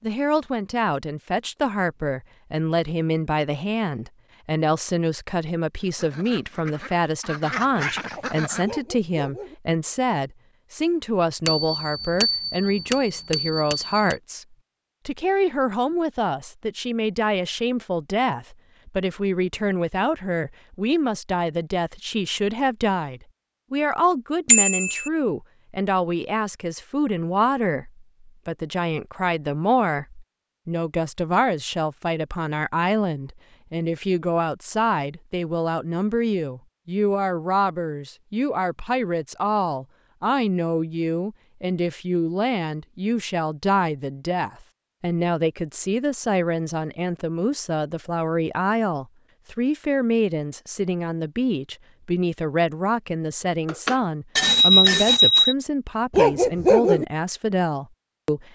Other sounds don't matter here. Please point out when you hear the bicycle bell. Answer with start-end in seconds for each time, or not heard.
11.4-14.2, 24.4-25.1, 53.6-55.5.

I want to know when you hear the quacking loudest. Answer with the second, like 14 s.
8 s.